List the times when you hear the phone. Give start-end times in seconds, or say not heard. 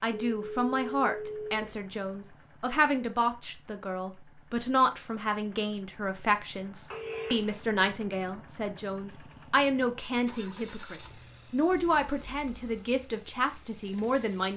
0.1-1.6, 6.9-7.5, 11.7-12.8.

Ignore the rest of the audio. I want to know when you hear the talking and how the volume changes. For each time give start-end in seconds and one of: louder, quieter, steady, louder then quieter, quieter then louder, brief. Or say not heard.
0.0-14.5 steady.